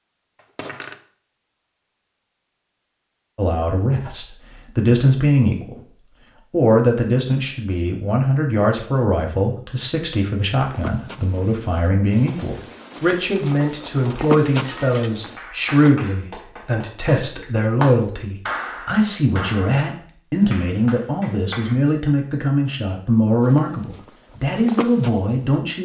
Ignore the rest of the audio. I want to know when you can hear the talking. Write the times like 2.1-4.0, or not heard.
3.4-5.8, 6.5-25.8.